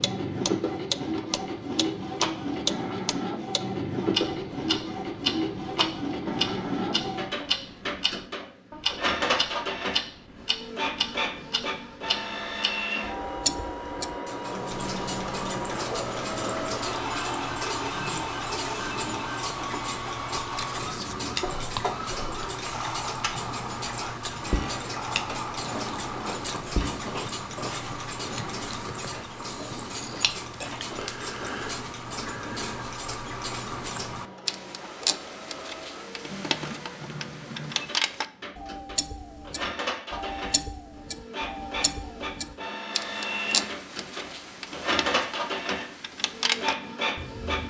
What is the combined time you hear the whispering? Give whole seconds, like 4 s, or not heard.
7 s.